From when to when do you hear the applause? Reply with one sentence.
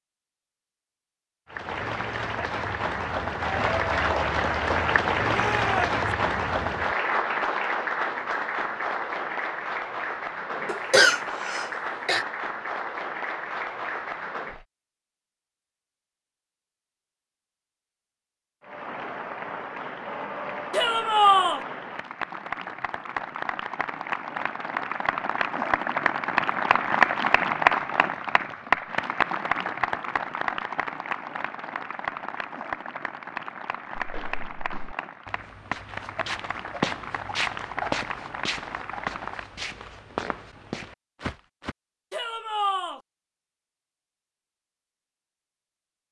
The applause can be heard from 1.5 to 14.7 s and from 18.6 to 39.5 s.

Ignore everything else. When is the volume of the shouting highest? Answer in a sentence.
The loudest moment of the shouting is at 21 seconds.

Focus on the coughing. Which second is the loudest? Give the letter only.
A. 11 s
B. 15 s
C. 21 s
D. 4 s
A.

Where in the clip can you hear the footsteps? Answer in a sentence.
The footsteps can be heard from 34.0 to 41.8 s.